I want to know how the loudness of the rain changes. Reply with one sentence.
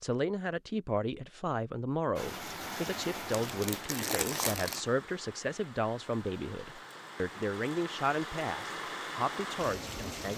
The volume of the rain goes down, then up.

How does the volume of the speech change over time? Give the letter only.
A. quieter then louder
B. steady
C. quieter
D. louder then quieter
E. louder
B.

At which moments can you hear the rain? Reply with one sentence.
The rain can be heard from 2.1 to 10.3 s.